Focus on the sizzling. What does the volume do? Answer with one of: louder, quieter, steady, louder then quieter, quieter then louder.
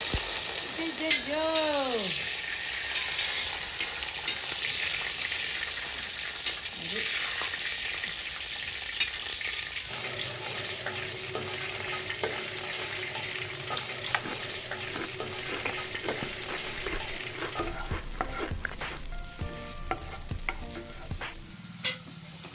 quieter.